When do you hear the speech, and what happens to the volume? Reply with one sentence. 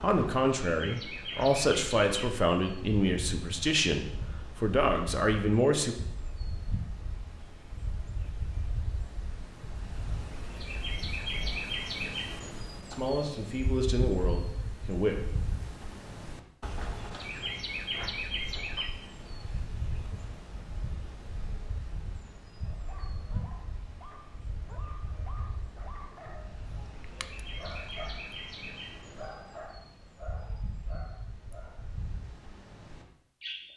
The speech can be heard from 0.0 to 6.0 s, at a steady volume; and briefly from 12.9 to 15.2 s.